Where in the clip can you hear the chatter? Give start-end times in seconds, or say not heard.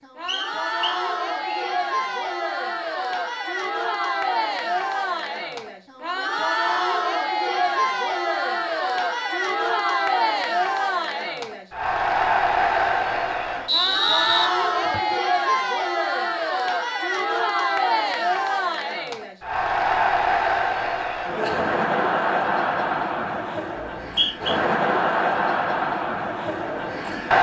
0.0-27.3.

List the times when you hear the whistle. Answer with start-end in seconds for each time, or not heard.
0.2-1.6, 13.7-15.2, 23.9-24.6.